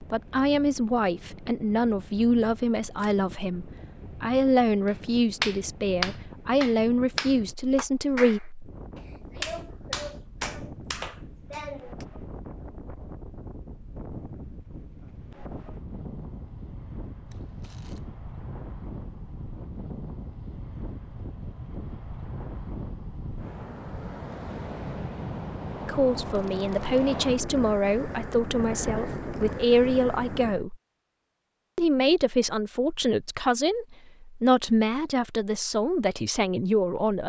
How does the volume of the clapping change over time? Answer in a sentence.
The volume of the clapping goes down.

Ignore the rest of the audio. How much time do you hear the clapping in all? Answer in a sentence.
The clapping can be heard for 7 seconds in total.